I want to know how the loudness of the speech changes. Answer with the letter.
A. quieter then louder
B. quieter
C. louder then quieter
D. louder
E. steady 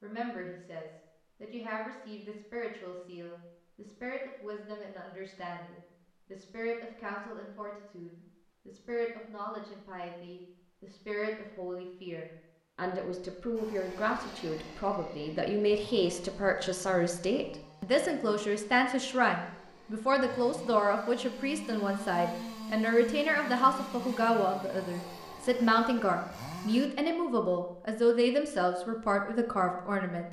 D.